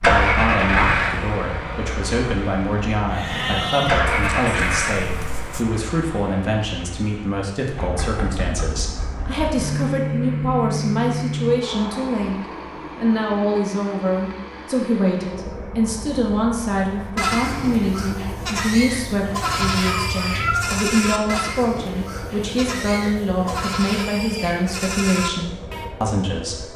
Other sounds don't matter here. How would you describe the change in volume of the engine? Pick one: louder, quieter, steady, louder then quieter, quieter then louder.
quieter.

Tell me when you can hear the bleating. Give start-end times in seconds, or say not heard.
3.1-5.7, 16.9-25.9.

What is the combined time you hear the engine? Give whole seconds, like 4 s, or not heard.
27 s.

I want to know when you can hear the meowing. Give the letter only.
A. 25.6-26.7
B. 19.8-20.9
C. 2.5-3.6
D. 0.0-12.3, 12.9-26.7
B.